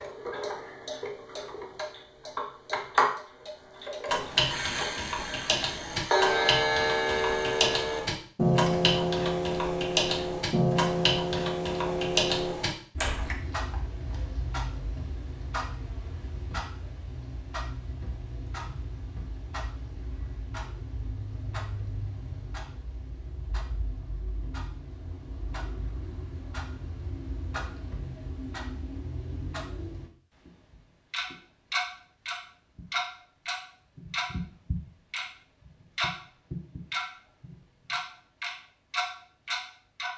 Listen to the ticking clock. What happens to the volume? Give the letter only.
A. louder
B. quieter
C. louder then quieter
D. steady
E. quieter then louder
E.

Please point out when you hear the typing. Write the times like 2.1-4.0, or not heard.
4.0-13.3.